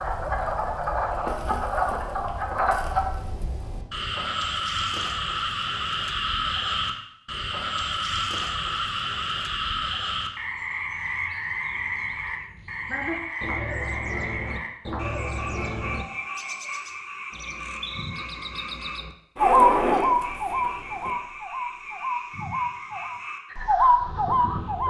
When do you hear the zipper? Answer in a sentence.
You can hear the zipper from 19.4 to 21.1 s.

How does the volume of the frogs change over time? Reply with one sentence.
The loudness of the frogs goes down.